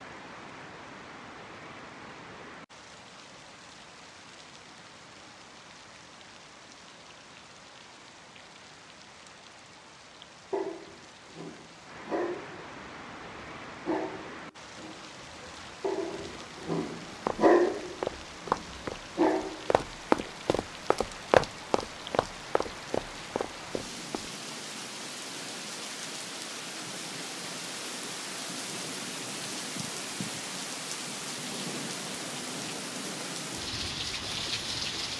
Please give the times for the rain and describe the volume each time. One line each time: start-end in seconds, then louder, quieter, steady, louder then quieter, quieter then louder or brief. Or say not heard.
0.0-35.1 louder.